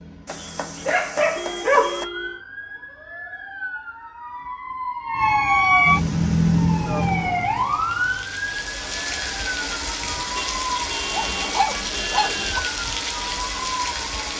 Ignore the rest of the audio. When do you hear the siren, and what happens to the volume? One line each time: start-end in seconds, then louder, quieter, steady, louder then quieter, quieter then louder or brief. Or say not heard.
0.0-14.3 louder then quieter.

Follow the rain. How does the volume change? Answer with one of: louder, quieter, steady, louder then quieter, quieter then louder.
louder.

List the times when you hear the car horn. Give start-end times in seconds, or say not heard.
1.4-2.4, 10.3-12.6.